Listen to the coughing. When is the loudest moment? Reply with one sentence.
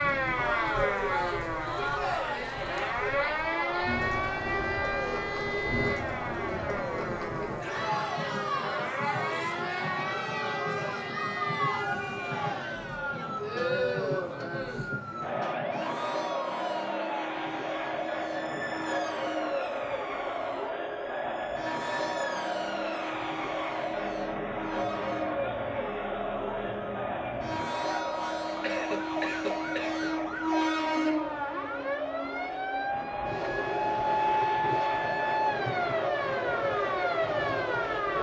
The volume of the coughing peaks at 29 seconds.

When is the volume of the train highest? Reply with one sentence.
The volume of the train peaks at 31 seconds.